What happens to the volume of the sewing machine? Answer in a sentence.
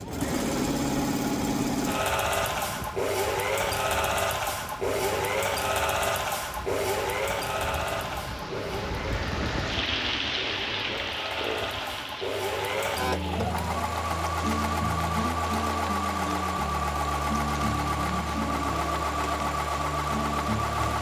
The volume of the sewing machine goes down, then up.